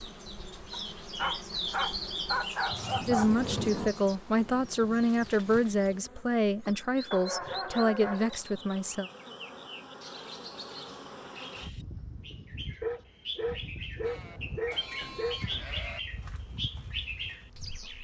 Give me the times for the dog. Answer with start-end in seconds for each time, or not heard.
0.7-3.4, 7.1-8.4, 12.8-15.4.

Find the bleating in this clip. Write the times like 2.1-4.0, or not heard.
14.1-16.0.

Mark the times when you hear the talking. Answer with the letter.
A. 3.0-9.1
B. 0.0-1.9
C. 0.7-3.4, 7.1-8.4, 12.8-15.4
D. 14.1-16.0
A.